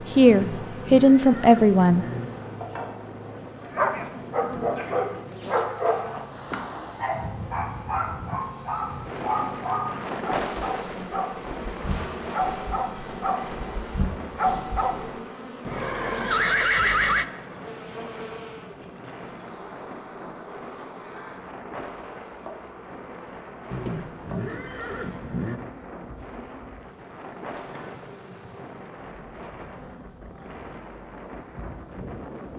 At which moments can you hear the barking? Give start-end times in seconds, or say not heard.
3.6-15.2.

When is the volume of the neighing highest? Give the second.
17 s.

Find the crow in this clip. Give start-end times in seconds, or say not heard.
not heard.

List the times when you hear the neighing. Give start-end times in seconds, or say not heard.
0.2-2.2, 15.7-17.2, 23.7-25.6.